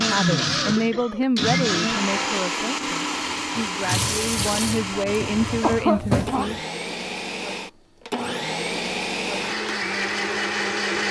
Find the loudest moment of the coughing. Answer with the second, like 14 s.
6 s.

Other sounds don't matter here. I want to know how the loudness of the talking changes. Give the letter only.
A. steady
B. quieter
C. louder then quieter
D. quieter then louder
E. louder
D.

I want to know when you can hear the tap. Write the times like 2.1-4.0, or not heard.
3.5-6.6.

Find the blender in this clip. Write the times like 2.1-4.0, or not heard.
0.0-11.0.